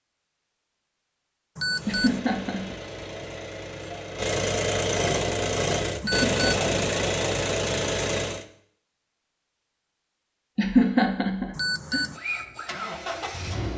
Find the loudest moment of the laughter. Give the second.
11 s.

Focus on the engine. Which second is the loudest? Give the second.
7 s.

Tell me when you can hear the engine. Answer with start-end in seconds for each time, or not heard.
1.6-8.4, 12.1-13.7.